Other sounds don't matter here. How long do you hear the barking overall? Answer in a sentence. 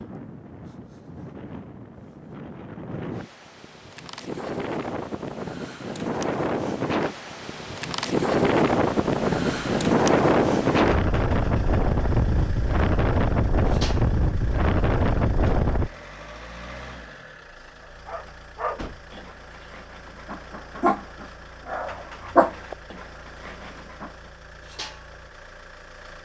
You can hear the barking for 6 seconds altogether.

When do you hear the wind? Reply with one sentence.
The wind can be heard from 0.0 to 15.9 s.